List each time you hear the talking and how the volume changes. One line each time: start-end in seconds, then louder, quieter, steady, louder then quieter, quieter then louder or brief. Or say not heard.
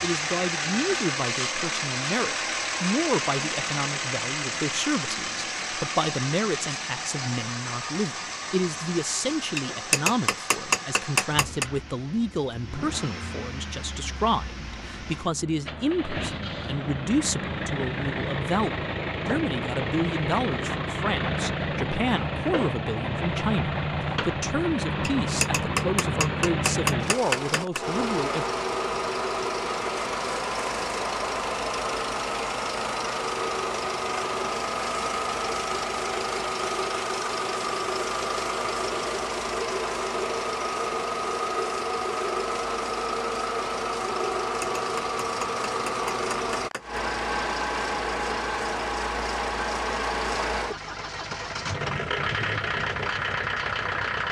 0.0-28.4 steady.